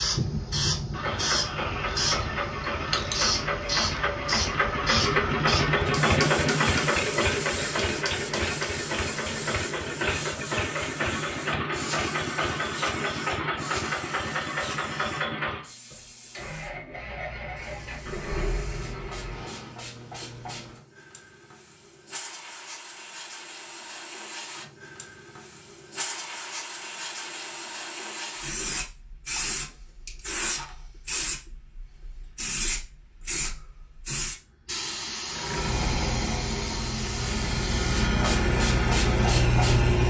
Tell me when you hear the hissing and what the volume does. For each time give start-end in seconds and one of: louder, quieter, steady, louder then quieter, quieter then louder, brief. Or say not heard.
0.0-39.9 quieter then louder.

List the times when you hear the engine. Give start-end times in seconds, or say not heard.
0.0-19.8, 35.3-40.0.